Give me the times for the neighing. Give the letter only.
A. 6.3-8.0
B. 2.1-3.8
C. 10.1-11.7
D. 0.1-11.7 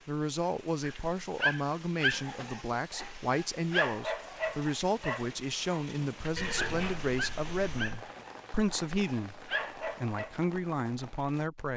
A.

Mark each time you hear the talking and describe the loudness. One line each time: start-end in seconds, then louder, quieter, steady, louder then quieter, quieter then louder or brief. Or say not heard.
0.1-11.7 steady.